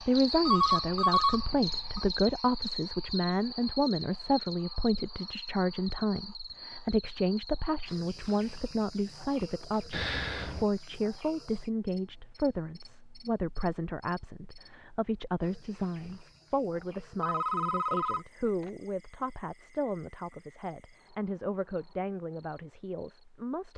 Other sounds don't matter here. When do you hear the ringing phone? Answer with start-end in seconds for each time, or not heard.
0.5-2.0, 9.9-10.7, 17.2-18.7.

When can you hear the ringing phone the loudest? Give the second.
1 s.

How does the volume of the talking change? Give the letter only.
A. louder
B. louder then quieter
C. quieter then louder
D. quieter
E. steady
D.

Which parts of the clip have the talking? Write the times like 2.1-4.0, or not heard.
0.0-23.7.